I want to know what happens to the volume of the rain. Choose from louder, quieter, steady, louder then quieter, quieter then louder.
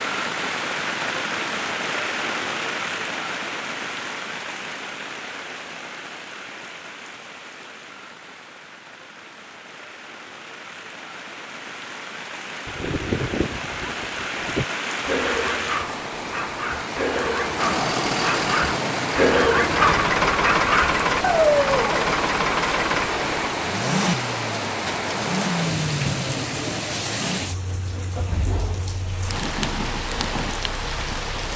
quieter then louder.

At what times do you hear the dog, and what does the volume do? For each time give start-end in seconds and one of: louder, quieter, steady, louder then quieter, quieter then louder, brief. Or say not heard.
12.7-22.1 louder.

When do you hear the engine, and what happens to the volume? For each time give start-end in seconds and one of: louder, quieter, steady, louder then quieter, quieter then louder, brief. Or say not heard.
17.6-31.5 quieter.